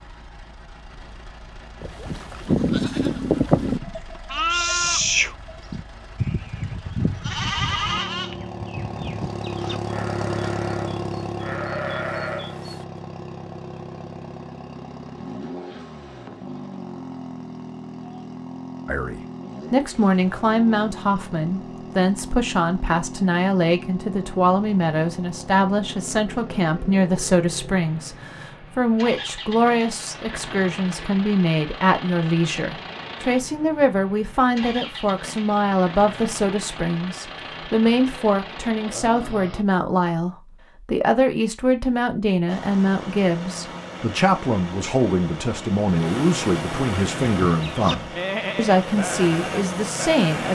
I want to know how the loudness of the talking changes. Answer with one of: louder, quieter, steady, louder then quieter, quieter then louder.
steady.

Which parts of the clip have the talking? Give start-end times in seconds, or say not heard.
18.9-50.4.